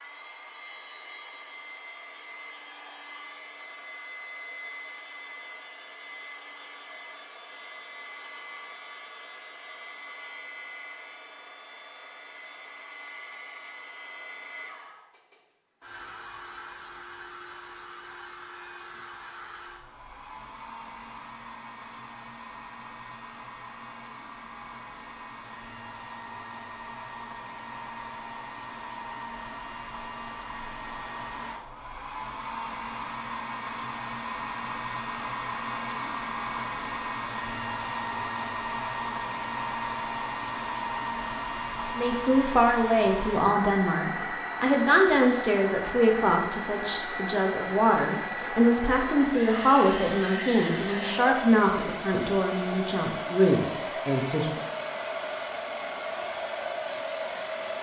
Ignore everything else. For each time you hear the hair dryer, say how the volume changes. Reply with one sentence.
The hair dryer can be heard from 0.0 to 57.7 s, getting louder.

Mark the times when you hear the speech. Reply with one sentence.
You can hear the speech from 42.0 to 54.6 s.